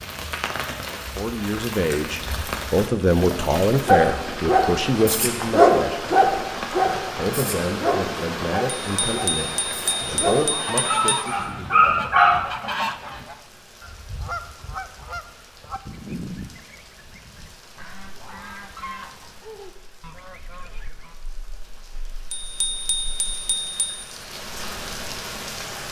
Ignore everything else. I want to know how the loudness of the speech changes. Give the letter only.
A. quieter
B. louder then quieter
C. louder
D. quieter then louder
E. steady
A.